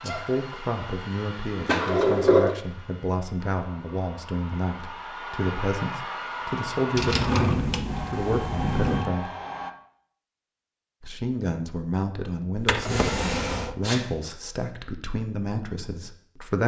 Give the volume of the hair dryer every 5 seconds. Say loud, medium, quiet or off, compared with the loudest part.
medium, loud, off, off.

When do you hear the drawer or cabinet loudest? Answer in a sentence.
The loudest moment of the drawer or cabinet is at 2 seconds.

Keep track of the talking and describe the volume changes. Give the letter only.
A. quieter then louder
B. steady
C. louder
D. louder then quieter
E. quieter
B.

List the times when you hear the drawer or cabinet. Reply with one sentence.
The drawer or cabinet can be heard from 1.6 to 2.5 s, from 7.0 to 9.1 s and from 12.6 to 13.8 s.